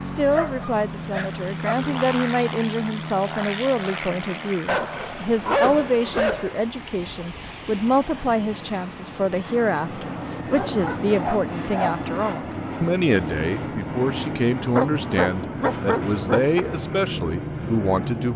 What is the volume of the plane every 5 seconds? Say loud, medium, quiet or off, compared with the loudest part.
loud, medium, loud, loud.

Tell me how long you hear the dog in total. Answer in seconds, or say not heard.
7 s.